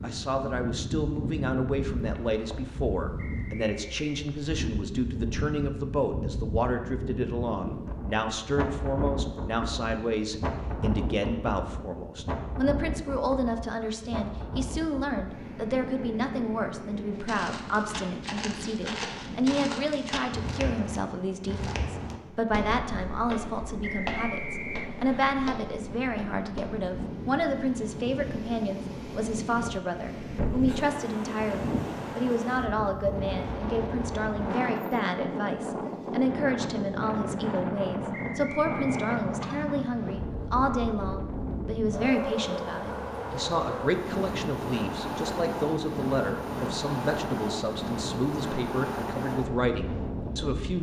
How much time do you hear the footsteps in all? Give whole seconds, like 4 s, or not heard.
10 s.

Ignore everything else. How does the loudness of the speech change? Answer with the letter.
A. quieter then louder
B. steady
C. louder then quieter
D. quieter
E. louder
B.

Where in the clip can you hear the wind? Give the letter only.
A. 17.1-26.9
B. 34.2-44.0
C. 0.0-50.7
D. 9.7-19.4
C.